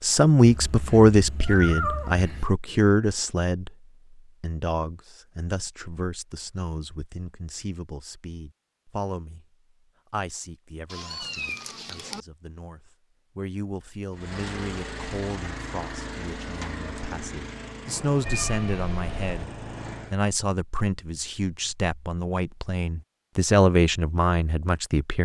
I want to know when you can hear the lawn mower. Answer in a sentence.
You can hear the lawn mower from 14.1 to 20.2 s.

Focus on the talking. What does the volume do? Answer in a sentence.
The loudness of the talking goes down, then up.